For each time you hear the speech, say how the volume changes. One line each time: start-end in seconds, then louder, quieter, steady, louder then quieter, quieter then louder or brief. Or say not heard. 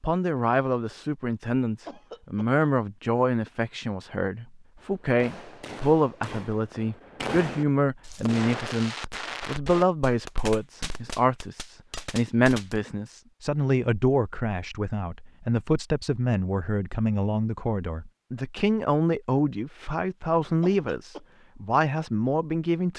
0.0-22.9 steady.